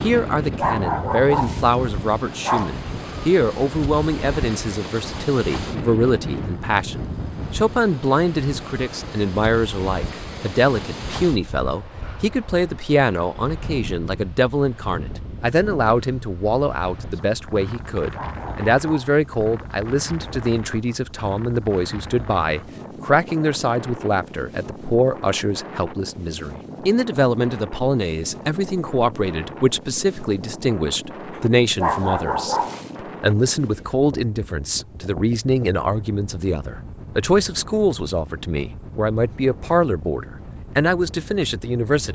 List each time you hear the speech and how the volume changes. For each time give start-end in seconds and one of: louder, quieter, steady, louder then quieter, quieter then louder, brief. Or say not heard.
0.0-42.0 steady.